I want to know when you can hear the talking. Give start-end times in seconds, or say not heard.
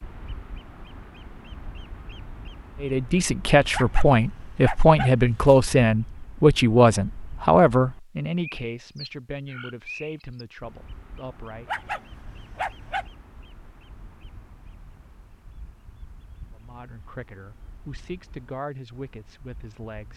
2.8-11.7, 16.5-20.1.